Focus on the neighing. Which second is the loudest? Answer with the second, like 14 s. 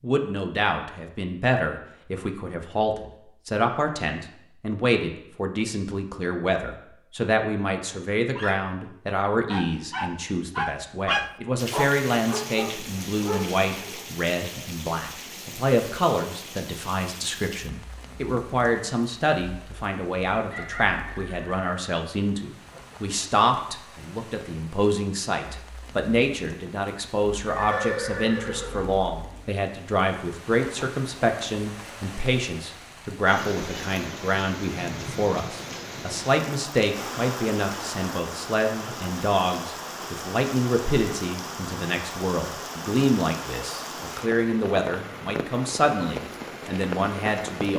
28 s.